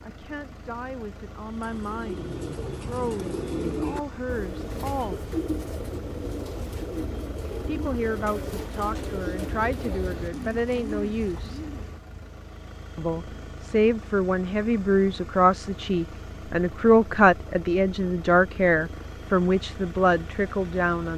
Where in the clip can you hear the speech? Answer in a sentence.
You can hear the speech from 0.0 to 5.2 s, from 7.7 to 11.6 s and from 12.9 to 21.1 s.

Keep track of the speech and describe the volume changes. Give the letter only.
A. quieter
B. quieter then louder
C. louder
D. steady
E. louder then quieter
C.